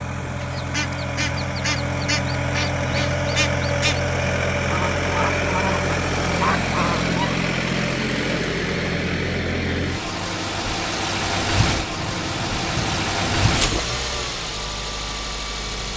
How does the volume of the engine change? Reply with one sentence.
The loudness of the engine stays about the same.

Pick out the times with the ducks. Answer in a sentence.
The ducks can be heard from 0.4 to 7.3 s.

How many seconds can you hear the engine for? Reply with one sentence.
You can hear the engine for 16 seconds altogether.